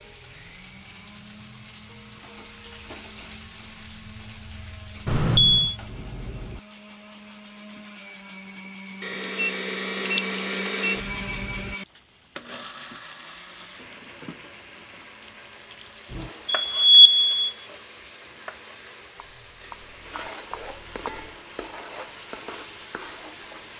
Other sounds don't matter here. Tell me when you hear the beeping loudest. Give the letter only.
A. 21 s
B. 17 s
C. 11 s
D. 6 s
B.